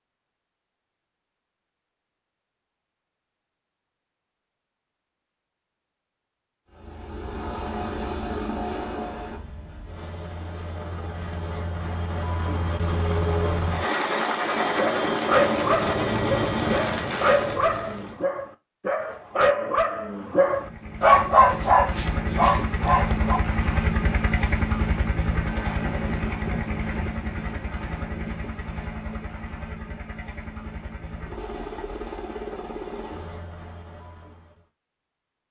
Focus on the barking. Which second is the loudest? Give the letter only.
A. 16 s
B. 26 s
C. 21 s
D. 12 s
C.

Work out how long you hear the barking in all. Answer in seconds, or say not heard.
9 s.